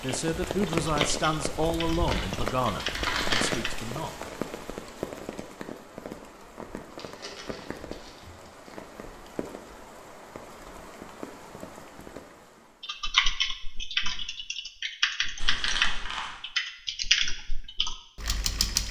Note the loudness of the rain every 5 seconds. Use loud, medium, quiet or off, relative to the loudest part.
loud, medium, medium, off.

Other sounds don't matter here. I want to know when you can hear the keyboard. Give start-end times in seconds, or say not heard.
0.0-3.9, 12.8-18.8.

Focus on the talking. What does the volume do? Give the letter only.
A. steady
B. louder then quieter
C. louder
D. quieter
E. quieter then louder
D.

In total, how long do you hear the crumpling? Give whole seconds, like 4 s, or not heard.
4 s.